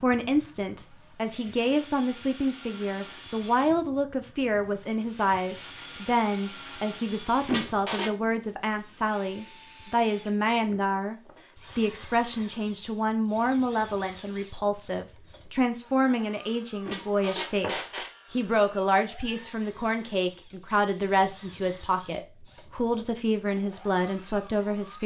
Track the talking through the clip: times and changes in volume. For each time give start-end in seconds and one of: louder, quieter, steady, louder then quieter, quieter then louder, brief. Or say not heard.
0.0-11.2 steady
11.8-25.0 steady.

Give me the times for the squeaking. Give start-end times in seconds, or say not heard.
7.5-8.2, 16.9-18.1.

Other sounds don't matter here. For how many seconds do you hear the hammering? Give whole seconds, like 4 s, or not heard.
not heard.